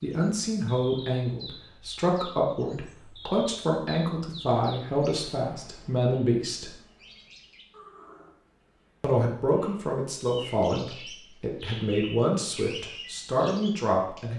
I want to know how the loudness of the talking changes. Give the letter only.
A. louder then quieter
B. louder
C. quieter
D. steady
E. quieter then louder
D.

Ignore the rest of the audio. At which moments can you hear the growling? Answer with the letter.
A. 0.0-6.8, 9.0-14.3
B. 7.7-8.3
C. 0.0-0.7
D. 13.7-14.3
B.